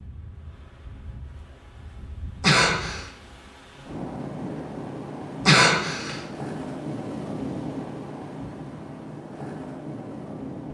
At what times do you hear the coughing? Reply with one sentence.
You can hear the coughing from 2.4 to 3.0 s and from 5.5 to 6.2 s.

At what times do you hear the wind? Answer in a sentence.
You can hear the wind from 0.0 to 10.6 s.